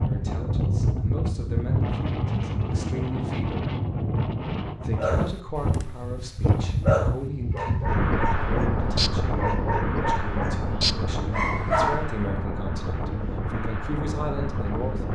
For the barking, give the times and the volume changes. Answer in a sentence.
You can hear the barking from 5.0 to 12.1 s, getting louder.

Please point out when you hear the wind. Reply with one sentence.
The wind can be heard from 0.0 to 15.1 s.